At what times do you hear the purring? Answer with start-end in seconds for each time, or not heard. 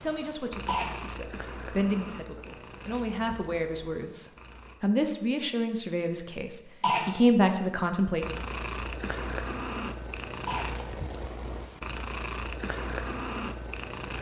0.0-4.8, 8.2-14.1.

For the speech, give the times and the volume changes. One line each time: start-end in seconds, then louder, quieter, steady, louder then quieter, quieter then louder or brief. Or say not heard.
0.0-8.2 louder.